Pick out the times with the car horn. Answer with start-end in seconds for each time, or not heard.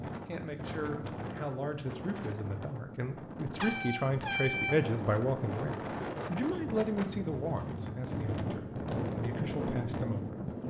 3.5-4.8.